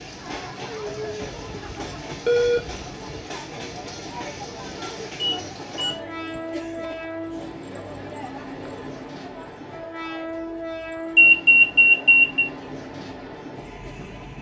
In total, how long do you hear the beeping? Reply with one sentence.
The beeping can be heard for 4 seconds in total.